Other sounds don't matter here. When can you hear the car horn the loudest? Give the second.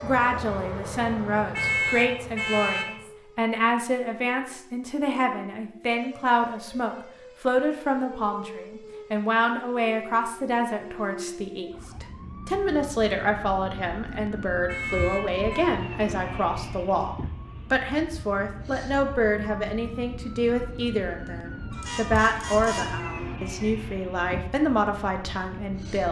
2 s.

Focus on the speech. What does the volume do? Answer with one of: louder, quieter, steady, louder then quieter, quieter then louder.
steady.